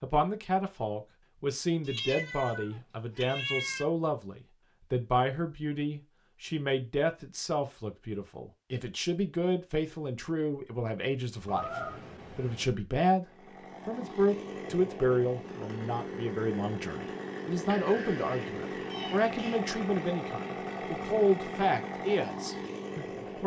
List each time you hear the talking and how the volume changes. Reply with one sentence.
The talking can be heard from 0.0 to 23.4 s, at a steady volume.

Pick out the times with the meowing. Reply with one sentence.
The meowing can be heard from 1.9 to 3.9 s, from 11.4 to 12.8 s and from 17.6 to 19.6 s.